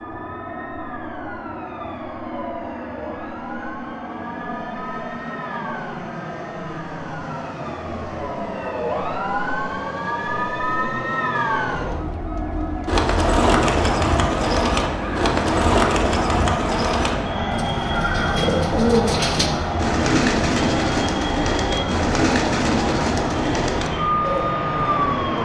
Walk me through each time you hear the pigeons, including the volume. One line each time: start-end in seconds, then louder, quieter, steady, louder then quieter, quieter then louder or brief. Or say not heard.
12.8-24.6 steady.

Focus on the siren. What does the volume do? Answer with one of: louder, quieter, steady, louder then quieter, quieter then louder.
louder.